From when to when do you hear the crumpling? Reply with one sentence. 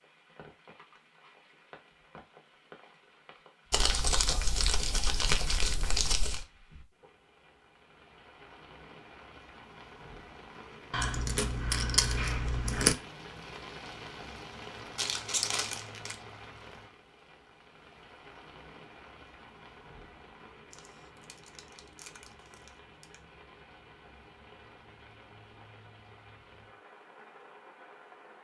You can hear the crumpling from 3.7 to 6.5 s, from 14.9 to 16.1 s and from 20.7 to 23.2 s.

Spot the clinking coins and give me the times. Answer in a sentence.
The clinking coins can be heard from 10.9 to 12.9 s.